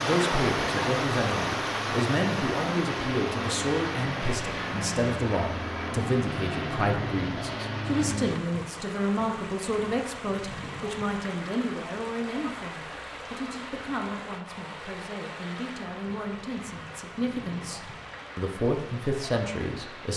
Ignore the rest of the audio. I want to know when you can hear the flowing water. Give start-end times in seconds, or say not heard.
0.0-20.1.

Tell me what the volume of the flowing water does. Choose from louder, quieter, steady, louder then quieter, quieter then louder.
quieter.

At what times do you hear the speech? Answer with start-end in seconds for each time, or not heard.
0.0-20.1.